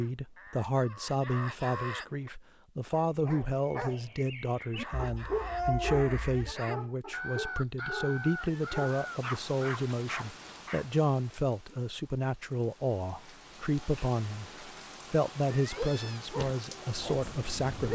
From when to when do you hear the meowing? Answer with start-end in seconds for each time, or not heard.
5.0-6.5, 15.4-16.4.